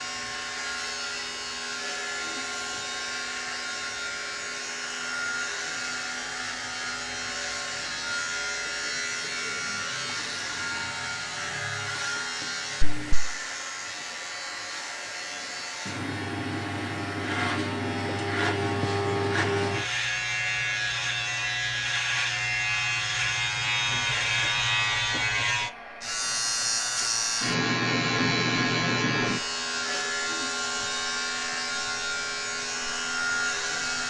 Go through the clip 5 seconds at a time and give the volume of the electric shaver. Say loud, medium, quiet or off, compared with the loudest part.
medium, medium, medium, loud, loud, loud, loud.